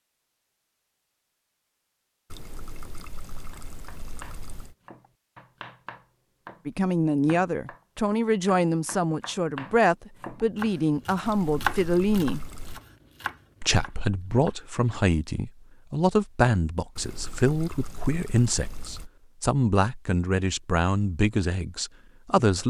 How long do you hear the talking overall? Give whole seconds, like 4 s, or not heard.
15 s.